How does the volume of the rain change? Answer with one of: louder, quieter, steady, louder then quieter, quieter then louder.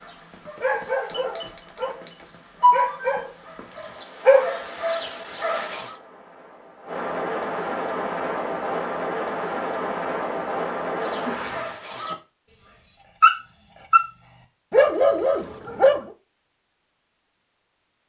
louder.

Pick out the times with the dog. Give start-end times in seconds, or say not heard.
0.0-5.8, 10.9-16.0.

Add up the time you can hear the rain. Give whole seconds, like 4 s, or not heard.
12 s.